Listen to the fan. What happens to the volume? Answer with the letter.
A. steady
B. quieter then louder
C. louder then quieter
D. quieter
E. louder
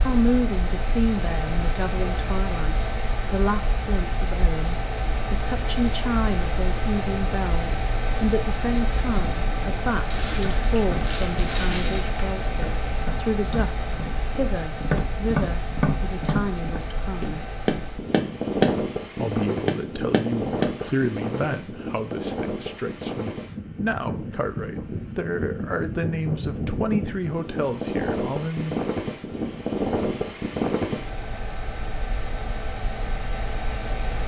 A.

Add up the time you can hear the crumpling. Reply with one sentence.
You can hear the crumpling for 2 seconds altogether.